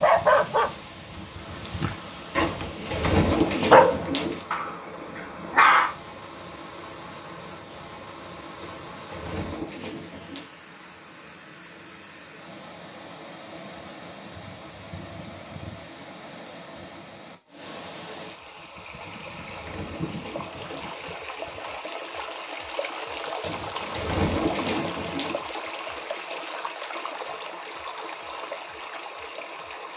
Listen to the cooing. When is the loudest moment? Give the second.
3 s.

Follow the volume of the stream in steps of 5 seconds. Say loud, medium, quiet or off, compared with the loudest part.
medium, medium, medium, medium, loud, loud.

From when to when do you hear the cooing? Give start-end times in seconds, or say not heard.
2.4-4.5, 8.6-10.4, 19.0-20.9, 23.4-25.4.